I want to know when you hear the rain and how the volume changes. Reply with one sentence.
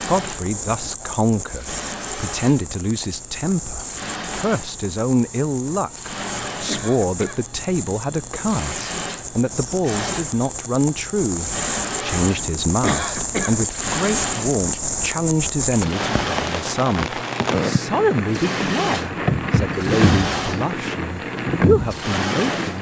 You can hear the rain from 0.0 to 22.7 s, getting louder.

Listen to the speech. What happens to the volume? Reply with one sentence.
The loudness of the speech stays about the same.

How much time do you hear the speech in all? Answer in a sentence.
You can hear the speech for 23 seconds altogether.